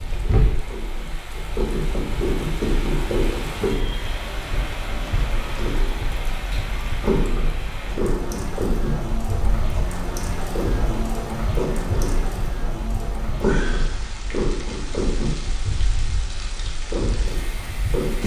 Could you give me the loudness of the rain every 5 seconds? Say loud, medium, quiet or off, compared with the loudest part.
loud, loud, loud, medium.